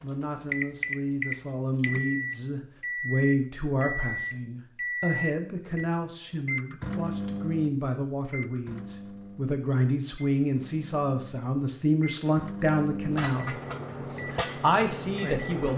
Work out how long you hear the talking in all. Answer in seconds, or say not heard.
16 s.